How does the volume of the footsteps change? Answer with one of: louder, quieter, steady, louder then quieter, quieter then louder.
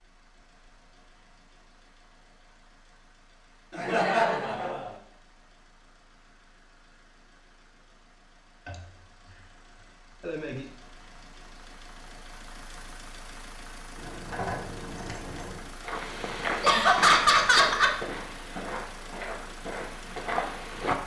quieter then louder.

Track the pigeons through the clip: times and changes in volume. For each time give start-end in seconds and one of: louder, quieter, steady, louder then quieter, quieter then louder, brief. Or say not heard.
not heard.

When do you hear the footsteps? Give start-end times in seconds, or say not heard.
15.8-20.9.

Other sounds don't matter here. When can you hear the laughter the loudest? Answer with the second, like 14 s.
17 s.